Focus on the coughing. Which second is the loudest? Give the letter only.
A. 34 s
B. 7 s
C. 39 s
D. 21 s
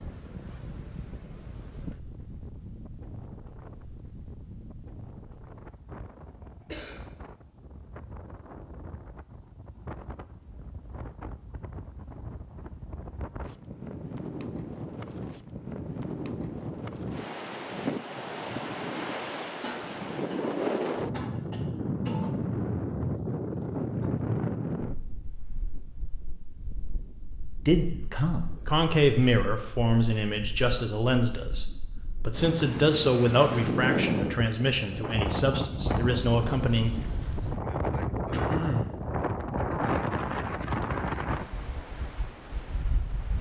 C.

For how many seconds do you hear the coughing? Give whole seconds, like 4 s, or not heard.
4 s.